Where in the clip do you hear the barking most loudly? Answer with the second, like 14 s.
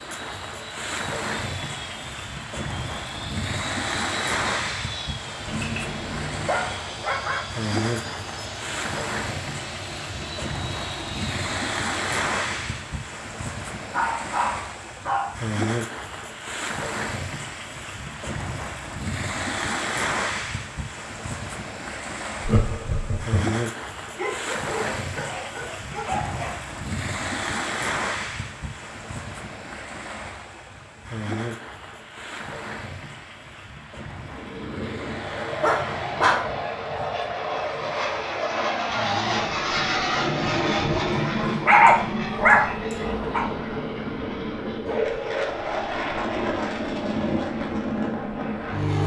42 s.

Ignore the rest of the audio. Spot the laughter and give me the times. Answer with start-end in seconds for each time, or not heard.
22.4-23.4.